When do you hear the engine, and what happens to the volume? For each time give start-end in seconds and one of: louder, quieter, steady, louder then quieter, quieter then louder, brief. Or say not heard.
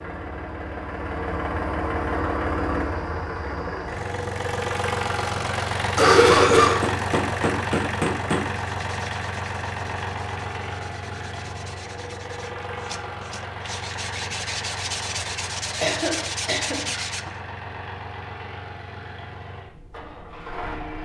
0.0-21.0 quieter.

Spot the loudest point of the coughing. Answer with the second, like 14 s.
6 s.